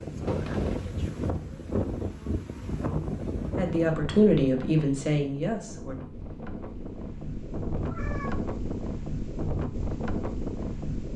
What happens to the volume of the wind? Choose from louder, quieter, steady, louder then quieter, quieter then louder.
quieter then louder.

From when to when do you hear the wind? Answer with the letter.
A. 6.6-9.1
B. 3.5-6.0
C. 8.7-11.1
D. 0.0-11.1
D.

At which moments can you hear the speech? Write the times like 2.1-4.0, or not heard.
3.5-6.0.